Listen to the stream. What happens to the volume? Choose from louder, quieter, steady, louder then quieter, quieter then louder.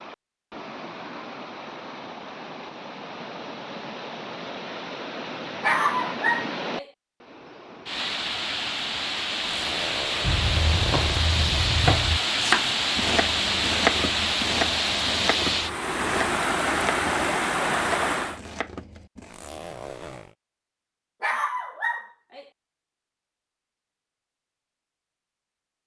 louder.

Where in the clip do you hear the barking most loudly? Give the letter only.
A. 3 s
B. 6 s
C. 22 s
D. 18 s
B.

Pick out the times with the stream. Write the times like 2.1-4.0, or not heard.
0.0-18.4.